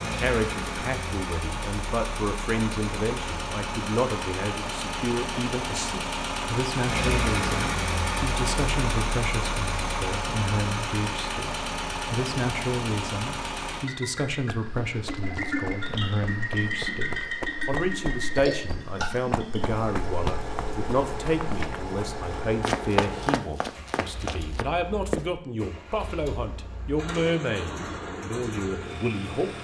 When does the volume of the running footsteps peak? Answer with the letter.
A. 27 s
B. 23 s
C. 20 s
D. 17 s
B.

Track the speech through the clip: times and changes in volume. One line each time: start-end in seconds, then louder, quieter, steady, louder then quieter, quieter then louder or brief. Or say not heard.
0.0-29.5 steady.